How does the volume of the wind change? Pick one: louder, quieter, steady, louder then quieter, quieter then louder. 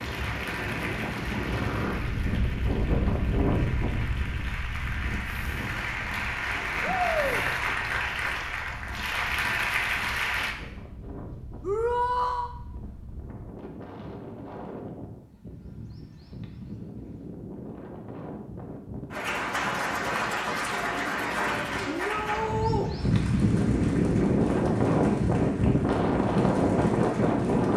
quieter then louder.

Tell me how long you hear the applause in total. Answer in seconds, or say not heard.
19 s.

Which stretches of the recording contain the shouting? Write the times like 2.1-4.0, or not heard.
6.8-7.4, 11.6-12.6, 21.9-22.9.